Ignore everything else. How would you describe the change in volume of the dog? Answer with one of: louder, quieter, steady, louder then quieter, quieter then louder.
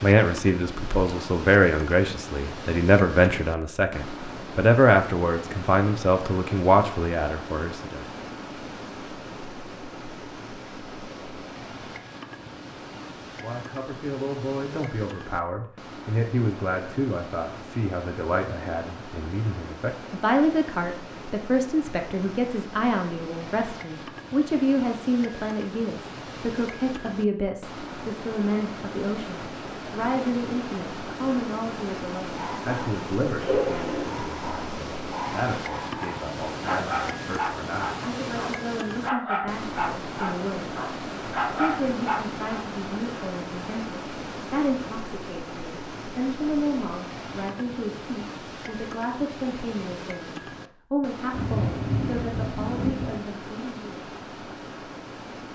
quieter then louder.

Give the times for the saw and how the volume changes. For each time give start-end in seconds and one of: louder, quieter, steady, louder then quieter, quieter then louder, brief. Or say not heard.
not heard.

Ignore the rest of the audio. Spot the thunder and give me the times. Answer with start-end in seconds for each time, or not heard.
51.3-53.2.